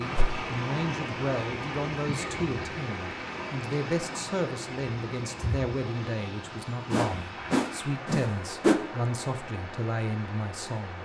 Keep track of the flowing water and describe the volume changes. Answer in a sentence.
The loudness of the flowing water goes down.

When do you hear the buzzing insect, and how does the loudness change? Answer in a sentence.
The buzzing insect can't be heard in this clip.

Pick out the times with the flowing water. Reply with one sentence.
The flowing water can be heard from 0.0 to 11.0 s.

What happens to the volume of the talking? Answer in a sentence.
The volume of the talking stays about the same.